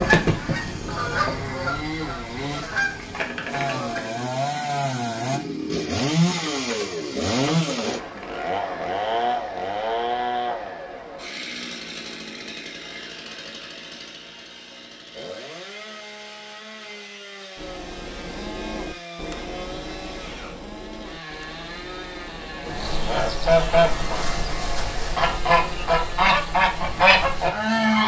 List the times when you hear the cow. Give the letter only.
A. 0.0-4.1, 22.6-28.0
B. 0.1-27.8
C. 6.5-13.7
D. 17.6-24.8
D.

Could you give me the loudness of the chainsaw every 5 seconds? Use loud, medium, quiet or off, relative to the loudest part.
medium, loud, medium, quiet, quiet, quiet.